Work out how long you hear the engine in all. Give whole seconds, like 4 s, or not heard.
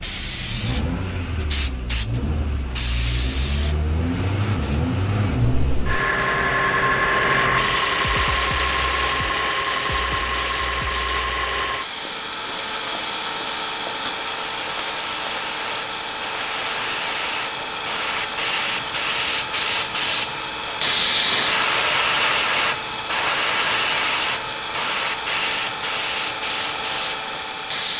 28 s.